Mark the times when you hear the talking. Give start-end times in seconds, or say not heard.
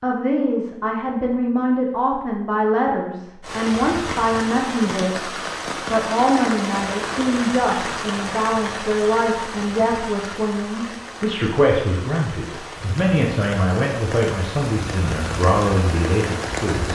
0.0-16.9.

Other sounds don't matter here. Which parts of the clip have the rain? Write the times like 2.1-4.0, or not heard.
3.4-16.9.